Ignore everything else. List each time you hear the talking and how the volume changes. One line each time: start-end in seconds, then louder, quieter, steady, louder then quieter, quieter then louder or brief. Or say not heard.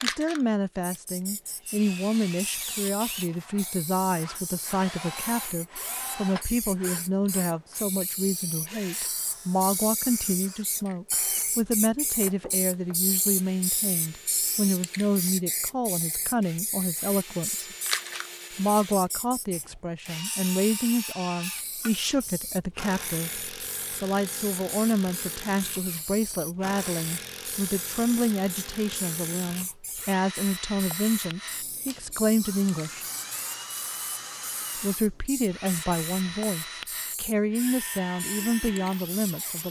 0.0-17.8 steady
18.6-33.0 steady
34.8-39.6 steady.